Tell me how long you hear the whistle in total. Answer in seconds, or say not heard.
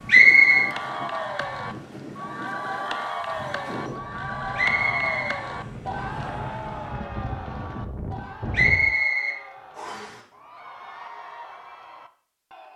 3 s.